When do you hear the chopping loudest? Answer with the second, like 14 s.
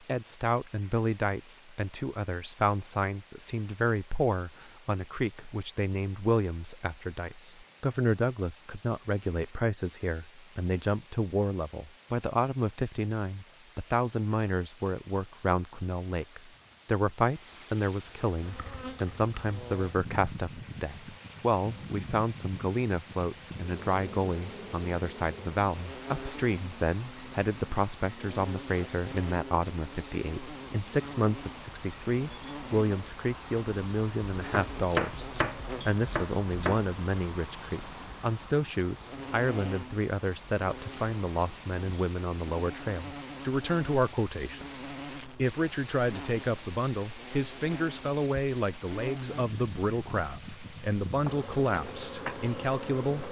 35 s.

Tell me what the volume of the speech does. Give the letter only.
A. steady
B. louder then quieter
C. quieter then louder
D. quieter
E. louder
A.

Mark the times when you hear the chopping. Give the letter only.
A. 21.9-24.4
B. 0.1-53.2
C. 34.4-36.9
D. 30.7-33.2
C.